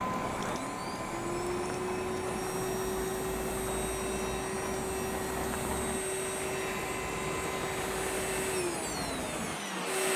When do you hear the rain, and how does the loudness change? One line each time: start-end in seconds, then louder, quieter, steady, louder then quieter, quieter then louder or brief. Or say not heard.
0.0-10.1 steady.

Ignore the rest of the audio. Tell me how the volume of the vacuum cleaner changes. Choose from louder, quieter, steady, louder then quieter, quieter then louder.
steady.